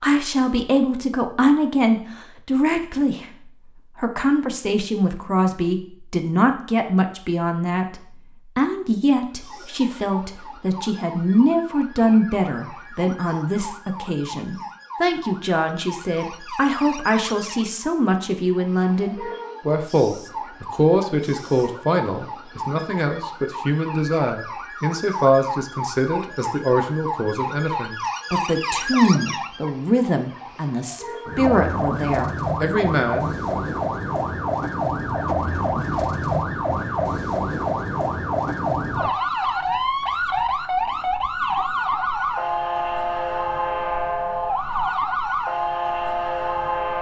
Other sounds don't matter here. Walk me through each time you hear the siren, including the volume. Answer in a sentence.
You can hear the siren from 9.2 to 46.9 s, getting louder.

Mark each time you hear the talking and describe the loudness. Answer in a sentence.
The talking can be heard from 0.0 to 33.6 s, at a steady volume.